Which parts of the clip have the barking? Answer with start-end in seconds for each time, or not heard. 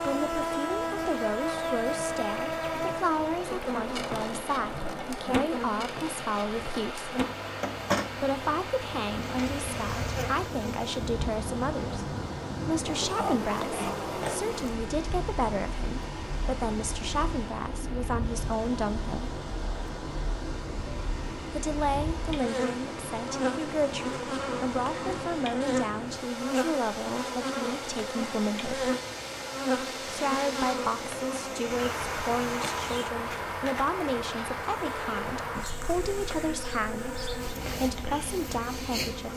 not heard.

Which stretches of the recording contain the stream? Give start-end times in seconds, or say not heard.
0.0-33.1.